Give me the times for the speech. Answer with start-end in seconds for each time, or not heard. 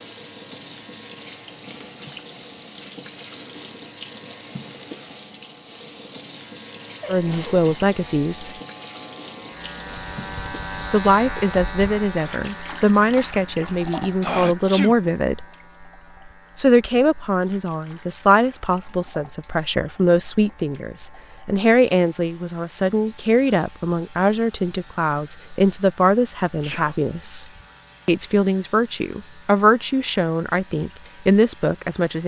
7.0-8.5, 10.9-15.4, 16.6-27.4, 28.1-32.2.